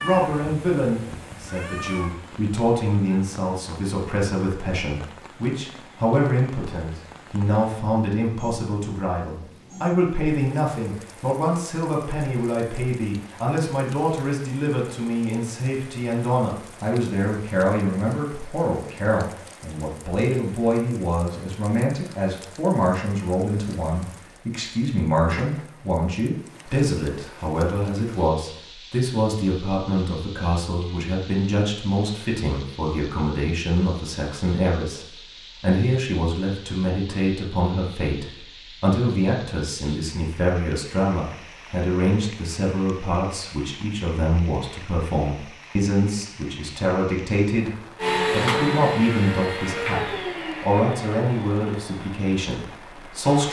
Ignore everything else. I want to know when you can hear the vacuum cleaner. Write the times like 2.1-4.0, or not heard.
48.0-53.4.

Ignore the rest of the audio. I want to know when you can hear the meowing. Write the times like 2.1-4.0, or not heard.
0.0-2.1.